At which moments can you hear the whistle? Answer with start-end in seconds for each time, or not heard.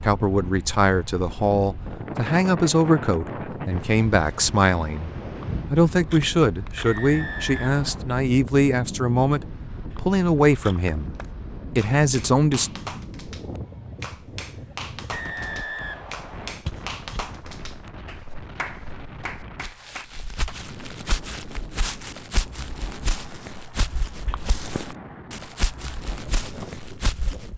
6.8-8.1, 15.1-16.6.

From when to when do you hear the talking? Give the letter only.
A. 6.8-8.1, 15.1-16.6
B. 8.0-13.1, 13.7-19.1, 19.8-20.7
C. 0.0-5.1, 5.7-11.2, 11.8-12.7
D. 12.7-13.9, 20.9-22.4
C.